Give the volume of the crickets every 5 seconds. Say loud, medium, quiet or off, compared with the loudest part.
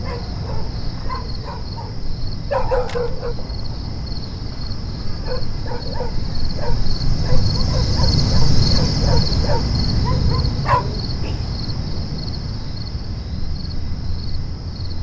medium, loud, medium.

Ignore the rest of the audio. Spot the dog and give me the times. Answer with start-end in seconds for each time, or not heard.
0.0-3.4, 5.2-11.5.